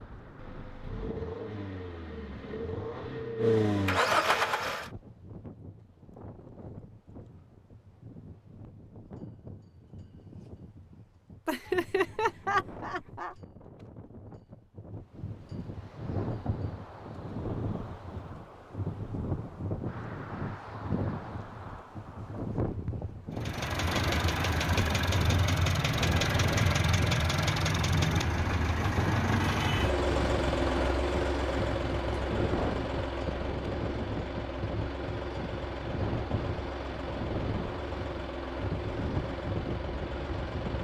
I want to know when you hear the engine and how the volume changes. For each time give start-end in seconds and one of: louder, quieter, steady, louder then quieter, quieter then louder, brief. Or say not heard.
0.0-4.9 louder
23.3-40.7 quieter.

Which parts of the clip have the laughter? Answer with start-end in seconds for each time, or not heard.
11.4-13.3.